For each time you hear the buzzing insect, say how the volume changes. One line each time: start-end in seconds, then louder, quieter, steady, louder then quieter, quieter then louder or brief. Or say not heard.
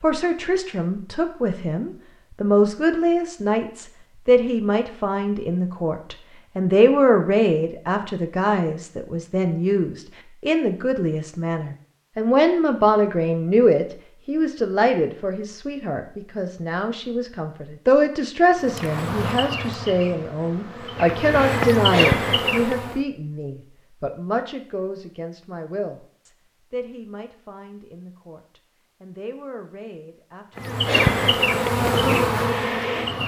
18.6-23.0 quieter then louder
30.6-33.2 brief.